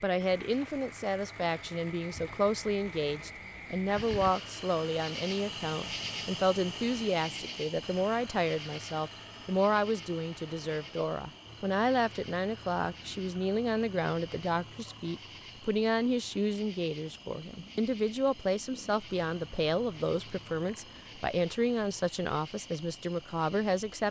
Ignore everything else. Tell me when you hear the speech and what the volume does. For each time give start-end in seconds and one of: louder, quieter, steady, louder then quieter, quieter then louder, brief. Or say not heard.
0.0-24.0 steady.